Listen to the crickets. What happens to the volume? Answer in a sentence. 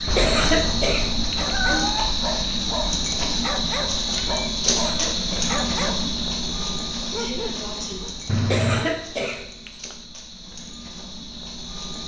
The loudness of the crickets goes down.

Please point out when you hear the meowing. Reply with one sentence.
The meowing can be heard from 0.1 to 2.1 s, from 4.2 to 5.3 s and from 8.2 to 8.9 s.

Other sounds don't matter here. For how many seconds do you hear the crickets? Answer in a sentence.
The crickets can be heard for 12 seconds in total.